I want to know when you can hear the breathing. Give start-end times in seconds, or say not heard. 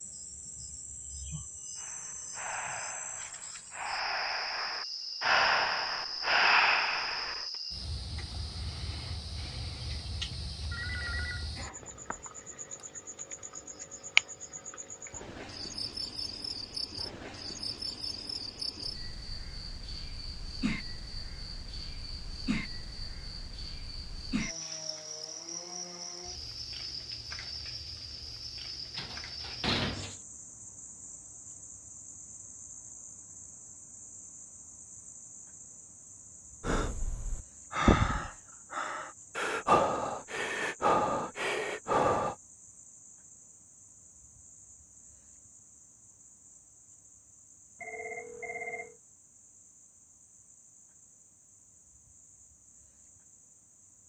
1.8-7.5, 36.6-42.4.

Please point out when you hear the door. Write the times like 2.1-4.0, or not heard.
28.9-30.2.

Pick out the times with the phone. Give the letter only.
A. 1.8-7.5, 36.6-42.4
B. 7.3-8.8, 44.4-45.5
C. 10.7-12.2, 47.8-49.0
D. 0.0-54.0
C.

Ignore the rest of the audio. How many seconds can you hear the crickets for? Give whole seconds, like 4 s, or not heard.
54 s.